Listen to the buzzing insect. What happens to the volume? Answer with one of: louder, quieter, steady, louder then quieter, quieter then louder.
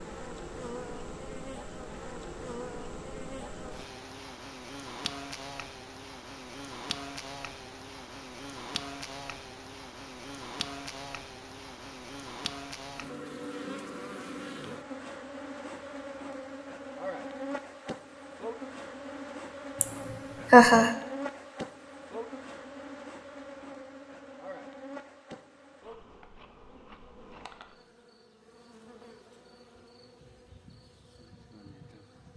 quieter.